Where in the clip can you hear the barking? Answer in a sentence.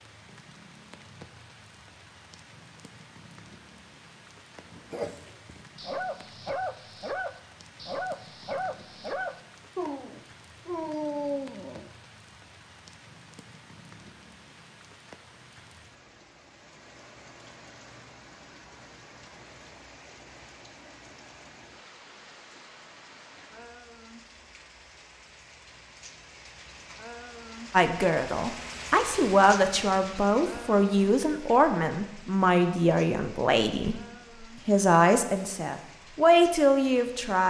The barking can be heard from 4.6 to 11.9 s.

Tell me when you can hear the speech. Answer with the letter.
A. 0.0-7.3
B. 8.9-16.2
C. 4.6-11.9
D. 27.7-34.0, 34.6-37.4
D.